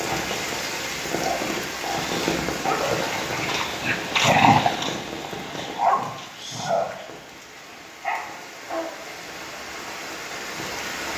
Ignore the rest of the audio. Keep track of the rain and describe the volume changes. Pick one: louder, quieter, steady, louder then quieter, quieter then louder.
quieter then louder.